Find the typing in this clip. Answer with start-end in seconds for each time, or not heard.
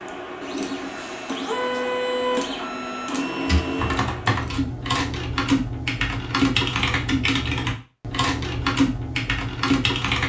3.5-10.2.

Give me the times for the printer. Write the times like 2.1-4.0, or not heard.
0.0-4.5.